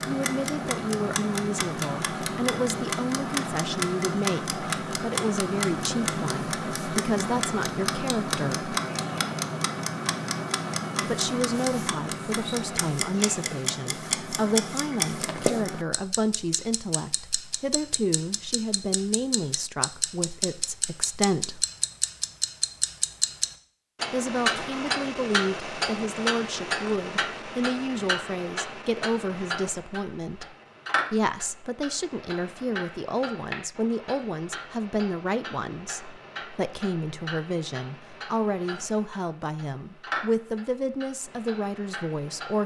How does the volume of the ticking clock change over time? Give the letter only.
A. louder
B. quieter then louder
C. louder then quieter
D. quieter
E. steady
D.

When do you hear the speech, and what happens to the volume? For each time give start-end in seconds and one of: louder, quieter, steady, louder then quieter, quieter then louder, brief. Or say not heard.
0.1-8.8 steady
11.0-21.6 steady
24.1-42.6 steady.